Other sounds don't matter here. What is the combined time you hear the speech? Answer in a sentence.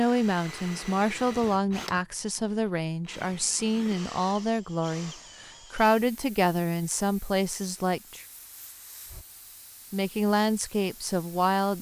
You can hear the speech for 10 seconds altogether.